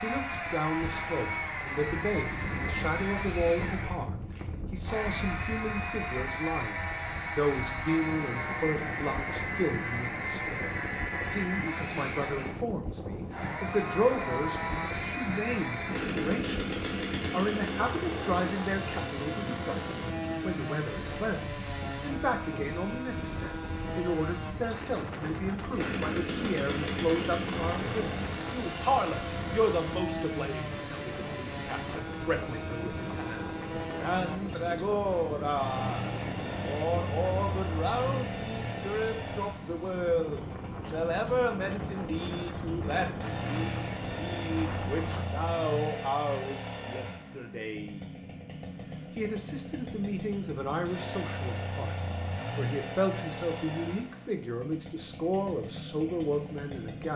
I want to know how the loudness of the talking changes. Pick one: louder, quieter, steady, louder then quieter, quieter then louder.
steady.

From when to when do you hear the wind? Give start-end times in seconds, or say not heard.
0.0-45.2.